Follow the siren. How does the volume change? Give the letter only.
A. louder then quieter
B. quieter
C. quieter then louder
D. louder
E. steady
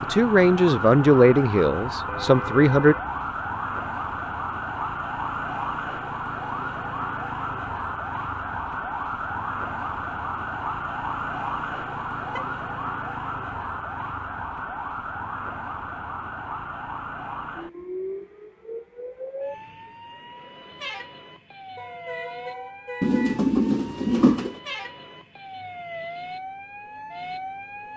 B.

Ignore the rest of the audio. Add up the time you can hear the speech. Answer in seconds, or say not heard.
3 s.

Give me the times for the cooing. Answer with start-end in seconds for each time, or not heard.
23.0-24.6.